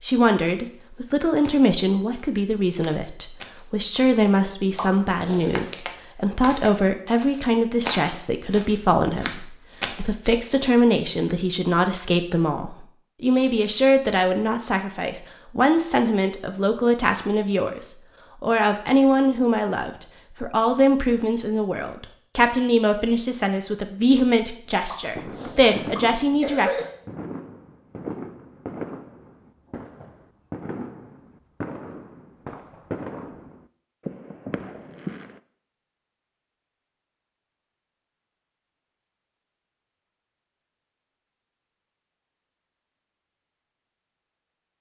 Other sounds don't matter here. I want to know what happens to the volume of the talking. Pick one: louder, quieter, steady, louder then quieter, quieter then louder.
steady.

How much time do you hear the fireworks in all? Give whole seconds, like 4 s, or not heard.
11 s.